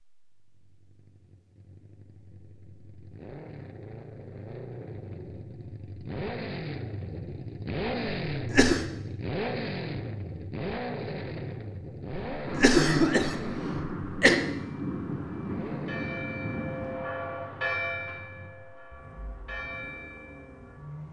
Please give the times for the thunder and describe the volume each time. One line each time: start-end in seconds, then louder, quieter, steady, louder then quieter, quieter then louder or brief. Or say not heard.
12.4-17.1 steady.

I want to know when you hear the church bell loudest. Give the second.
18 s.